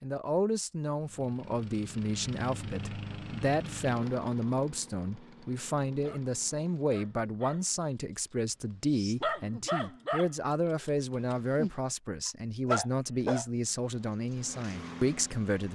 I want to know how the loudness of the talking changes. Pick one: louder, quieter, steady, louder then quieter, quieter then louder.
steady.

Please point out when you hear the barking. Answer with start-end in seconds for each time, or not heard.
6.0-13.4.